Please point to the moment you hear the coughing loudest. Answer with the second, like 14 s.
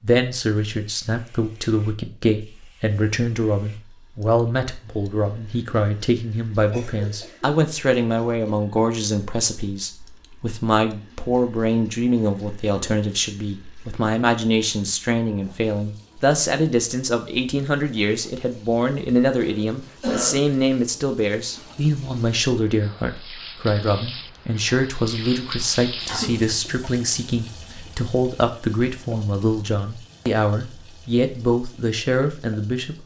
20 s.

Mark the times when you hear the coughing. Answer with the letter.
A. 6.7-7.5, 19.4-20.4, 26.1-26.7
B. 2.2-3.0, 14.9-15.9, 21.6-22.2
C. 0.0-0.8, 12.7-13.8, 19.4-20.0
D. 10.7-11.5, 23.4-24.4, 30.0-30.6
A.